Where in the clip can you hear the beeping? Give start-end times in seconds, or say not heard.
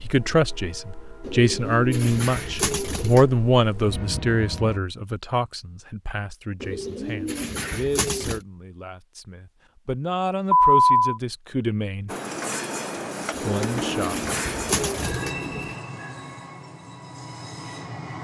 10.5-11.2.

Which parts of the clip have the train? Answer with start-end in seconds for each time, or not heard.
0.0-4.8, 12.1-18.1.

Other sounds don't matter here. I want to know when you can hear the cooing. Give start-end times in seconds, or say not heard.
1.2-3.2, 6.6-8.4, 13.3-15.8.